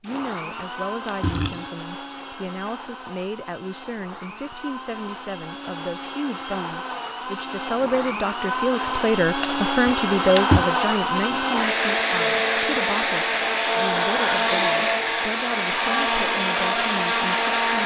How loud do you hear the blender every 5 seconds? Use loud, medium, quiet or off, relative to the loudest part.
quiet, medium, loud, loud.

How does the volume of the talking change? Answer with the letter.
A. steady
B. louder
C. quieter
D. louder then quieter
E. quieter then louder
D.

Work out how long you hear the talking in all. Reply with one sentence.
The talking can be heard for 18 seconds in total.